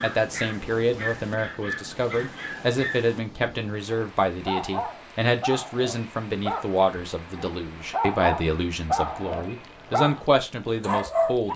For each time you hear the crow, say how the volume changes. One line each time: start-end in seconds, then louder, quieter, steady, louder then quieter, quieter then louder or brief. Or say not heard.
not heard.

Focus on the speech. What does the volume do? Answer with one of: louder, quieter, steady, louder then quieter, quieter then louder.
steady.